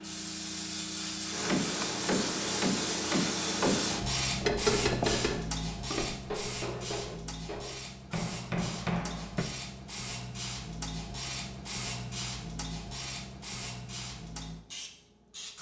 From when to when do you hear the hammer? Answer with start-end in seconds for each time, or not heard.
1.3-9.5.